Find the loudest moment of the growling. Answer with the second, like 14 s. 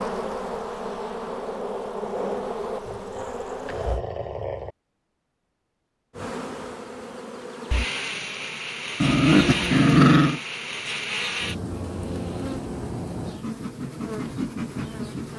10 s.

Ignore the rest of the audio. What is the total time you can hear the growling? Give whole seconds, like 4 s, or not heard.
3 s.